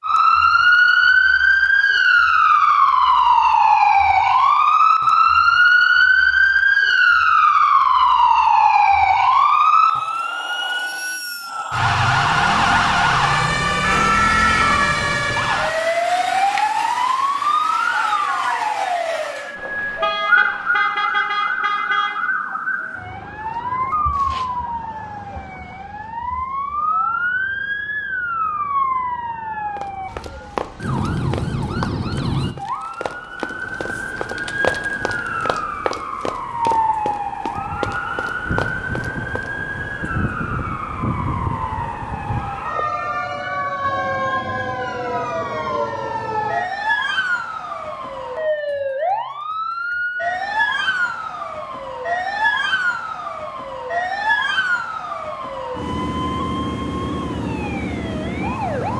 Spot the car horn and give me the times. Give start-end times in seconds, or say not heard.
19.6-22.3.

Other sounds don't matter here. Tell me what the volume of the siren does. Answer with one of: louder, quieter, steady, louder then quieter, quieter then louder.
quieter.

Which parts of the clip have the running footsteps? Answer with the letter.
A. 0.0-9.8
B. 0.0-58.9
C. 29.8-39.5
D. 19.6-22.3
C.